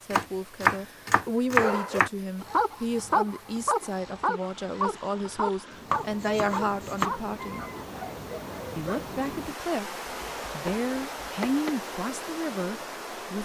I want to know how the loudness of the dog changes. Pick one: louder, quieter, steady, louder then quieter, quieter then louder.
quieter.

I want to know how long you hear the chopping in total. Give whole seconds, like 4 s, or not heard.
5 s.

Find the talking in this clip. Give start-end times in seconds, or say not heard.
0.0-7.7, 8.8-13.4.